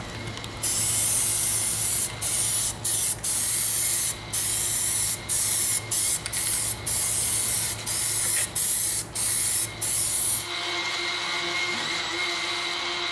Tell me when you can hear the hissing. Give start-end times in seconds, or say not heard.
0.0-13.0.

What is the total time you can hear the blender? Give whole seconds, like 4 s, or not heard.
13 s.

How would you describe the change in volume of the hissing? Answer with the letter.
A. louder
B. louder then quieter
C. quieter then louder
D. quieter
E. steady
D.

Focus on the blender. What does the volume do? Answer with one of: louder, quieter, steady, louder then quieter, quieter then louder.
louder.